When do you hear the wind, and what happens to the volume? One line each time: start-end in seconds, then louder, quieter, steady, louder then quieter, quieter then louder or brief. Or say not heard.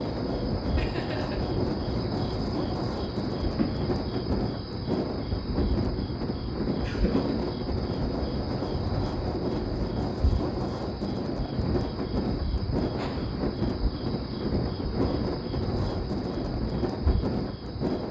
0.0-18.0 steady.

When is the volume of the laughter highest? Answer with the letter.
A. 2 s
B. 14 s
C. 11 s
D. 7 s
D.